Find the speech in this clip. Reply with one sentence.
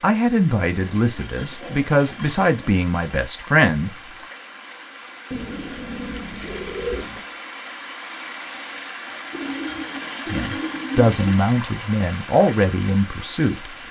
The speech can be heard from 0.0 to 3.9 s and from 10.3 to 13.7 s.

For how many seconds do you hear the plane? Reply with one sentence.
You can't hear the plane here.